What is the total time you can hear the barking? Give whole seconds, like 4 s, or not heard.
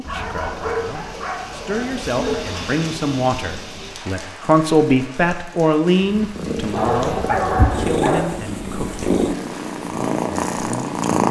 4 s.